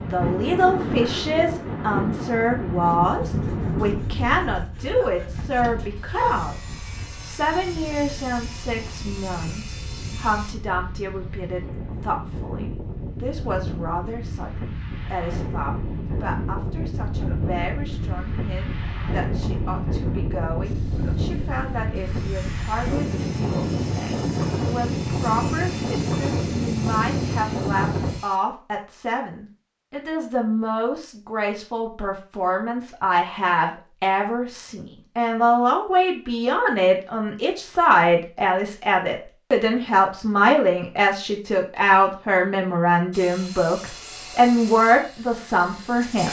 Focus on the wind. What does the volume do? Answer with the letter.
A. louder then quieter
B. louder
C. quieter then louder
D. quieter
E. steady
C.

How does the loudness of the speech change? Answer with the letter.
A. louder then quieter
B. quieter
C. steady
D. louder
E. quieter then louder
E.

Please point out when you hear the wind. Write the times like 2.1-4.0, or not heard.
0.0-28.2.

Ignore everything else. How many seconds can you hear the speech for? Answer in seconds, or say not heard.
46 s.